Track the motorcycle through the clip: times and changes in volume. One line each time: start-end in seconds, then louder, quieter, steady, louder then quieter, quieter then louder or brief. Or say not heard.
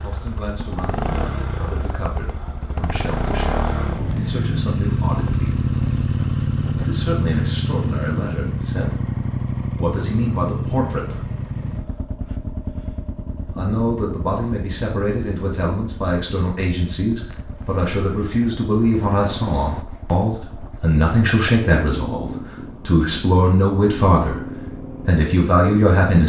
0.0-26.2 quieter.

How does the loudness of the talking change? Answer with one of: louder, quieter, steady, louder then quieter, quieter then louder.
louder.